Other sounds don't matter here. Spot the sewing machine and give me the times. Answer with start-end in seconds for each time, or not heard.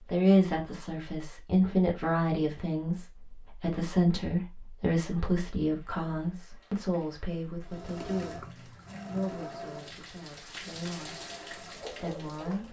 7.7-12.6.